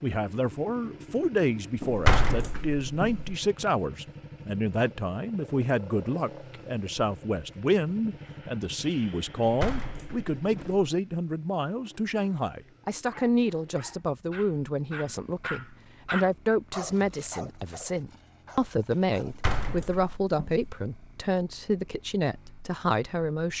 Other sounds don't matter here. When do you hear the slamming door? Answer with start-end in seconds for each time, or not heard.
1.8-3.4, 9.4-10.8, 19.2-20.7.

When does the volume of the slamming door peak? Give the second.
2 s.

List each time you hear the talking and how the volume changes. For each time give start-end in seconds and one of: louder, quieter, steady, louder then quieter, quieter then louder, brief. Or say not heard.
0.0-23.5 steady.